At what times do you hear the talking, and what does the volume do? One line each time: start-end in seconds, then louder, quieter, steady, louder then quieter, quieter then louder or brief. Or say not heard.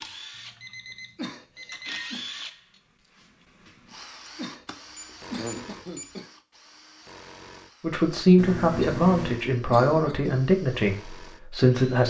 7.8-12.0 quieter.